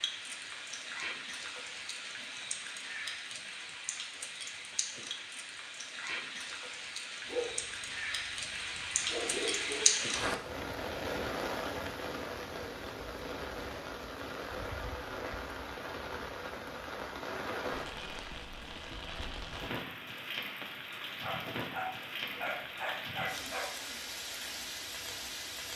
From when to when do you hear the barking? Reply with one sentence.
You can hear the barking from 7.2 to 9.8 s and from 21.2 to 23.7 s.